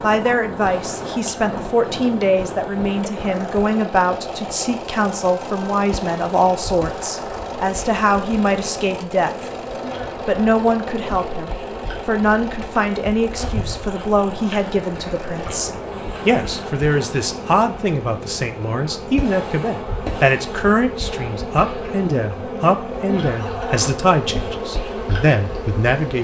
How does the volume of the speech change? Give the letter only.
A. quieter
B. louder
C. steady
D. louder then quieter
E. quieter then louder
C.